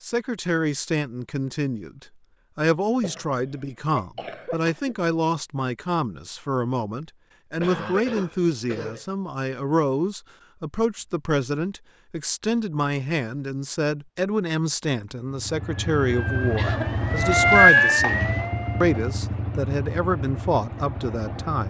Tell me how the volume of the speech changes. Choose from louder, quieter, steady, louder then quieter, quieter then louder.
steady.